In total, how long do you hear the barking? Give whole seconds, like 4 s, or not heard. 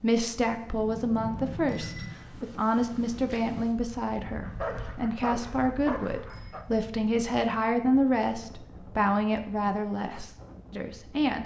2 s.